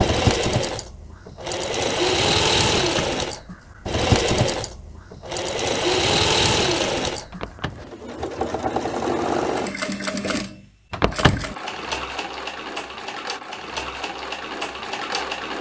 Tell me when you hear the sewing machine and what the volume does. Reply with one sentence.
You can hear the sewing machine from 0.0 to 15.5 s, getting quieter.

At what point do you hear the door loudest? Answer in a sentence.
The volume of the door peaks at 11 seconds.